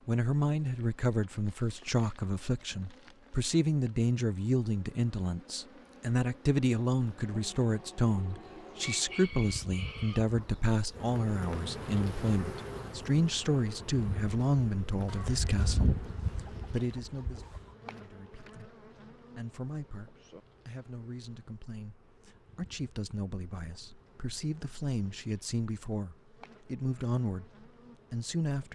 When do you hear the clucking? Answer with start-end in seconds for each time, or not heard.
8.8-10.8, 15.1-17.6.